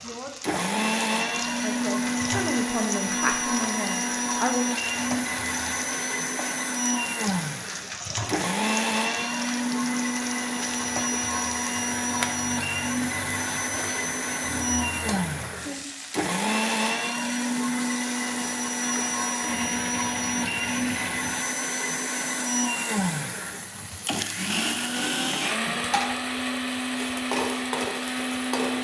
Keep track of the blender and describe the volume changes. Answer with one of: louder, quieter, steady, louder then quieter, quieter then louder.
steady.